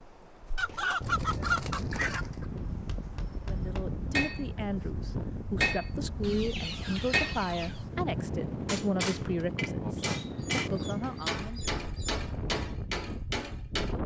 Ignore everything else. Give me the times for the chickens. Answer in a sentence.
The chickens can be heard from 0.6 to 2.5 s, from 6.2 to 7.8 s and from 10.2 to 12.2 s.